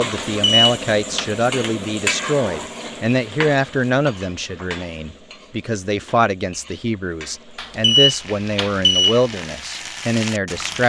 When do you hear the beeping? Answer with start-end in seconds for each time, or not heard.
0.1-1.2, 7.5-9.2.